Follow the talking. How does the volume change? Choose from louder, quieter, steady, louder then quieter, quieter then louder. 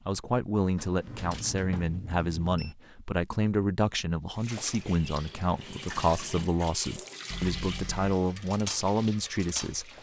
steady.